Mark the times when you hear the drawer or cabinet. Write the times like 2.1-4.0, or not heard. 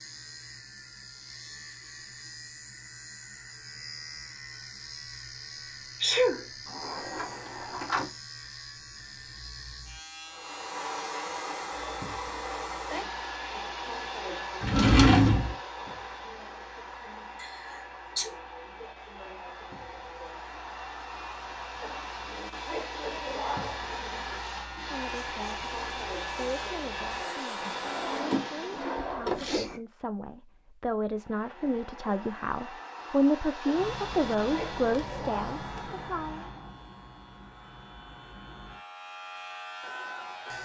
6.7-8.1, 14.6-15.6, 27.8-29.8.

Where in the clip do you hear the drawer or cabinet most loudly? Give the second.
15 s.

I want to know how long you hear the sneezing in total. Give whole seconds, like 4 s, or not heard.
2 s.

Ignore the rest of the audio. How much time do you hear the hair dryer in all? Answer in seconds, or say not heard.
28 s.